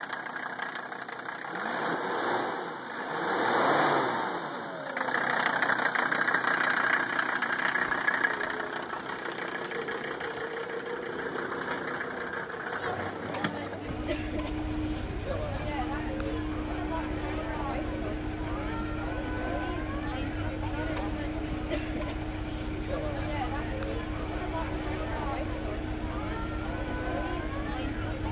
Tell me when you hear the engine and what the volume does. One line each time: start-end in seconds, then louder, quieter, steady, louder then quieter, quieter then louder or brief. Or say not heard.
0.0-28.2 quieter.